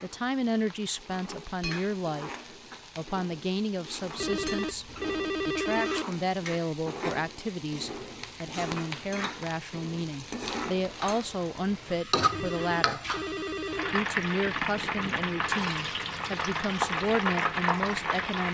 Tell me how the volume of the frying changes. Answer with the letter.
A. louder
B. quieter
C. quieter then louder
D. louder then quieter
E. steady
A.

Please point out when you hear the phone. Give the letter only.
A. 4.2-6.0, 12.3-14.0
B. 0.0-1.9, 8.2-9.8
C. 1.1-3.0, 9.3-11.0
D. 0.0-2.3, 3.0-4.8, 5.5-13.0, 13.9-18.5
A.